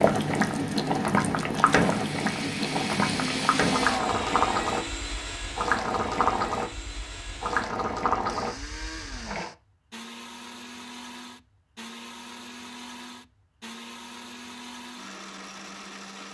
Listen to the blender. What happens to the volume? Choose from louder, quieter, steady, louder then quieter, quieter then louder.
quieter.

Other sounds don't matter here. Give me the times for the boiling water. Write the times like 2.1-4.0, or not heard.
0.0-9.5.